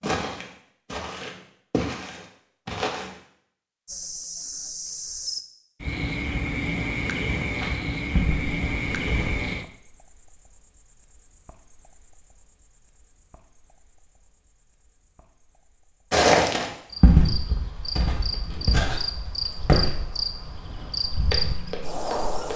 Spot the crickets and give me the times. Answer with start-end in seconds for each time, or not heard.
3.9-22.5.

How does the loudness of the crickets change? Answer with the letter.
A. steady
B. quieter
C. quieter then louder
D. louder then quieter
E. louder
C.